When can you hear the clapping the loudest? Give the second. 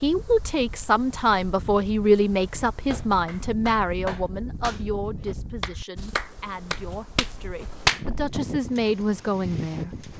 8 s.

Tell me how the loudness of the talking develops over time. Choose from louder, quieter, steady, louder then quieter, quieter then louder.
quieter then louder.